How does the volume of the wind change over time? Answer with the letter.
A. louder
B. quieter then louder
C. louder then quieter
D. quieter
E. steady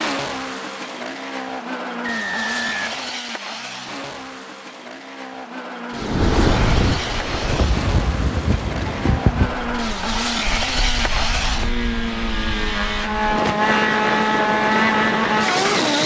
B.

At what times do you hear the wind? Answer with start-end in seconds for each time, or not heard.
6.0-16.0.